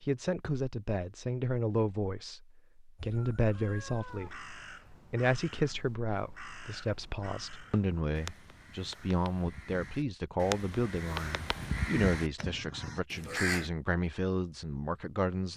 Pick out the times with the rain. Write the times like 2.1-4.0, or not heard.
not heard.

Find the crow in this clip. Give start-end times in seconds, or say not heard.
3.0-13.7.